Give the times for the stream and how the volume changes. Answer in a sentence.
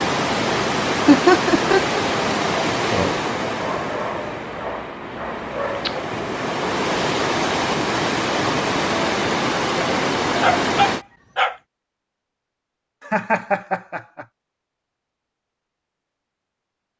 The stream can be heard from 0.0 to 11.1 s, getting quieter then louder.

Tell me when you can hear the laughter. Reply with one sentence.
You can hear the laughter from 1.1 to 2.0 s and from 13.1 to 14.2 s.